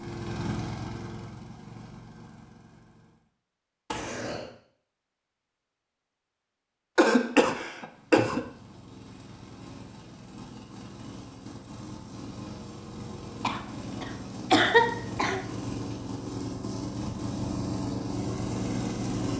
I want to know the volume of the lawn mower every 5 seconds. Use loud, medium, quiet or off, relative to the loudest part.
medium, quiet, medium, loud.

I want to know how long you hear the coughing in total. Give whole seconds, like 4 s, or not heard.
4 s.